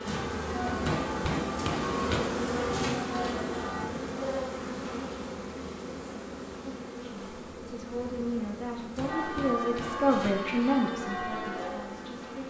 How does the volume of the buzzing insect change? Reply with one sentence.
The loudness of the buzzing insect goes down.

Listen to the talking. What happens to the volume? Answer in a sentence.
The volume of the talking goes up, then down.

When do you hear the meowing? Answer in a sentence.
The meowing can't be heard in this clip.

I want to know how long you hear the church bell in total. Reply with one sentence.
You can hear the church bell for 7 seconds altogether.